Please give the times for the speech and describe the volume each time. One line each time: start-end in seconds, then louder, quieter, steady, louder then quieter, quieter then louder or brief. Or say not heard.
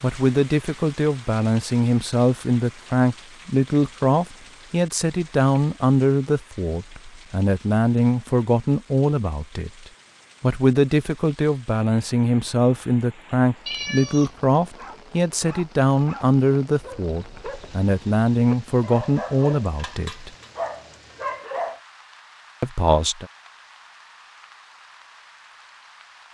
0.0-20.3 steady
22.6-23.3 brief.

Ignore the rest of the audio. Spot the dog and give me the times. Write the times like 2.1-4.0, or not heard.
14.8-21.8.